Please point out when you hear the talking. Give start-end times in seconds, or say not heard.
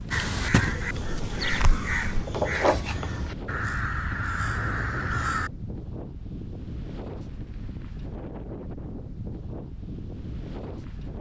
not heard.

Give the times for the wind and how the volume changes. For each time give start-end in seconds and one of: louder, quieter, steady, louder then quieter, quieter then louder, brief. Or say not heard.
0.0-11.1 steady.